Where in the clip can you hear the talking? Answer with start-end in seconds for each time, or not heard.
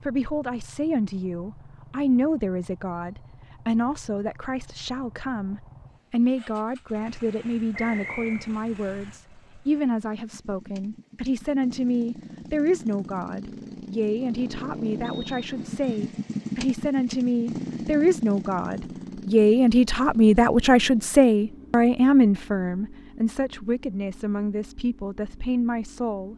0.0-26.3.